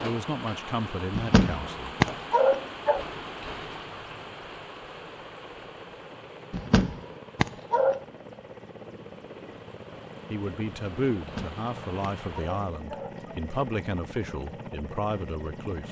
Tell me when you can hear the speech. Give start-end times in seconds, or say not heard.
0.0-1.9, 10.3-15.8.